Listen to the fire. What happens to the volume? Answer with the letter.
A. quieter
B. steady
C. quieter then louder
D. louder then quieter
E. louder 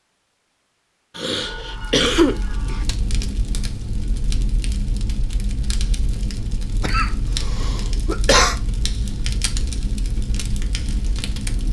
B.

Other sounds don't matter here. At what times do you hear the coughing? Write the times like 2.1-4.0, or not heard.
1.1-2.8, 6.8-8.6.